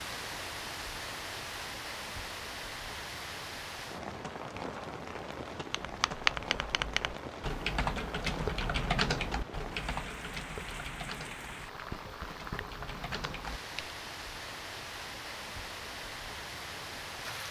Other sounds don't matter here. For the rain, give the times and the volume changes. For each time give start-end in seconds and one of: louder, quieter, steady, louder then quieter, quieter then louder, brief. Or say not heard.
0.0-17.4 steady.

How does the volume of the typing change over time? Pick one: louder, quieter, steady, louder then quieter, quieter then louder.
quieter.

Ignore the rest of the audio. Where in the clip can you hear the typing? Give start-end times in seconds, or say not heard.
5.7-13.9.